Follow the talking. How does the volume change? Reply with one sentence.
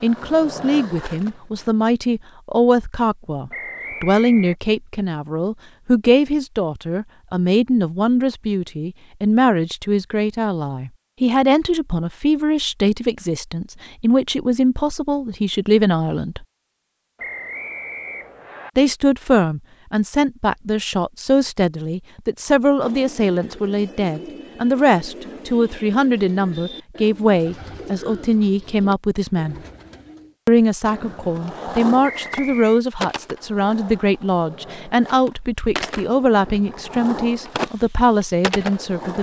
The loudness of the talking stays about the same.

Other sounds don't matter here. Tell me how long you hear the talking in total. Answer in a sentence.
The talking can be heard for 36 seconds in total.